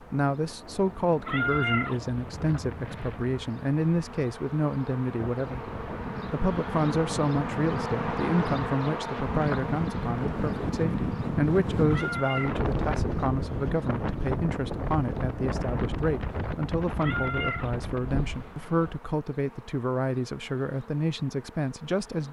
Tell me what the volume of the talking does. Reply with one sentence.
The loudness of the talking stays about the same.